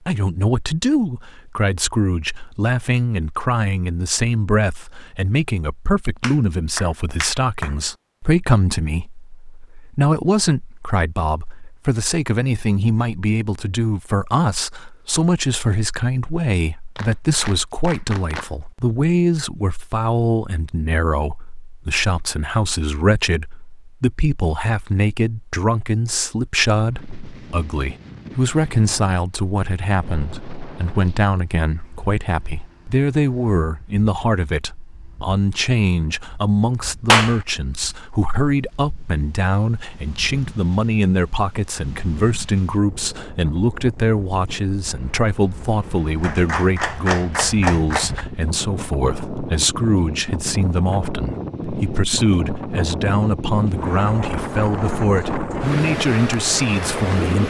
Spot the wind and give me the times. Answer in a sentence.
The wind can be heard from 26.9 to 57.4 s.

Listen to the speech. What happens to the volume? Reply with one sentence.
The loudness of the speech stays about the same.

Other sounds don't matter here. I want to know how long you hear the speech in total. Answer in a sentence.
The speech can be heard for 57 seconds in total.